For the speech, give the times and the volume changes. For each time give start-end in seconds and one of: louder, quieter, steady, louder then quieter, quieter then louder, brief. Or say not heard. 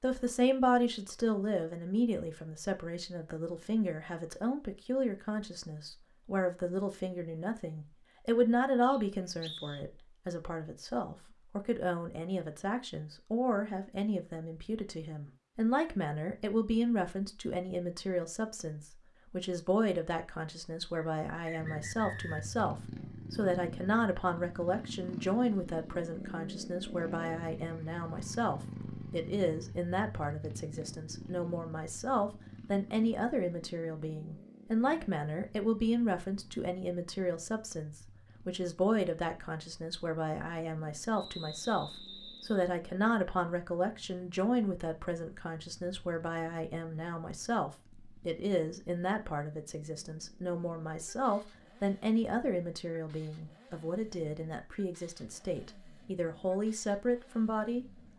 0.0-57.9 steady.